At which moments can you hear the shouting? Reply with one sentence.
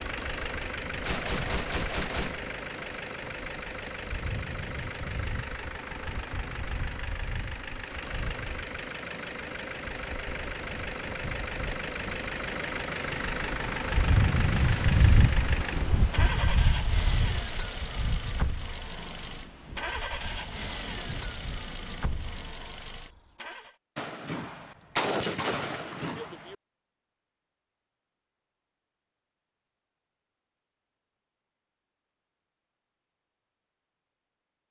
The shouting can't be heard in this clip.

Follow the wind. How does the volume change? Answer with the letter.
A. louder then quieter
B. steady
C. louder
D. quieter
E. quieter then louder
A.